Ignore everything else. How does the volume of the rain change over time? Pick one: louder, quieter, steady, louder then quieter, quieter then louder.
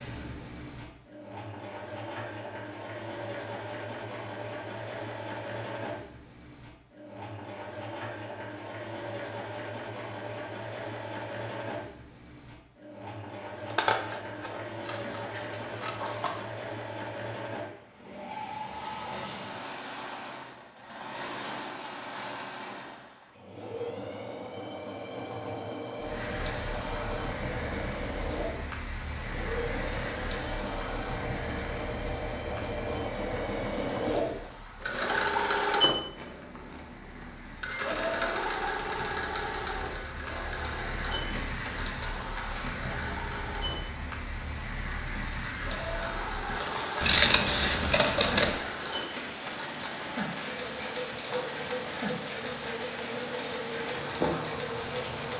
quieter then louder.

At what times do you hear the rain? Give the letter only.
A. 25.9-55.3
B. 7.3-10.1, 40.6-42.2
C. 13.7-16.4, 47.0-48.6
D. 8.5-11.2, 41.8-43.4
A.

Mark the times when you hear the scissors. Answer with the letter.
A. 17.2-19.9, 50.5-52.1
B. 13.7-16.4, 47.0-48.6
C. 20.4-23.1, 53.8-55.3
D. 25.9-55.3
B.